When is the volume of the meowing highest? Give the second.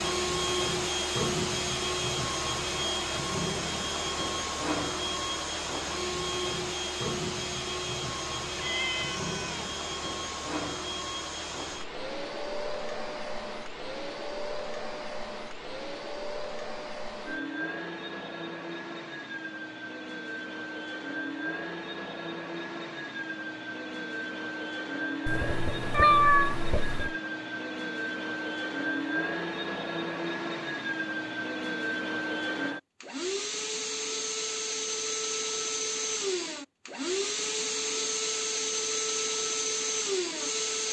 26 s.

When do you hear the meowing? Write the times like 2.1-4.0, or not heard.
8.6-9.6, 25.2-27.1.